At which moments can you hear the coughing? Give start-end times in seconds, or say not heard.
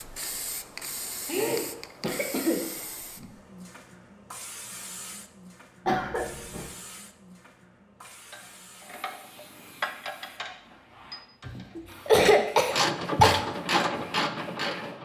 1.2-3.0, 5.8-6.7, 11.4-13.4.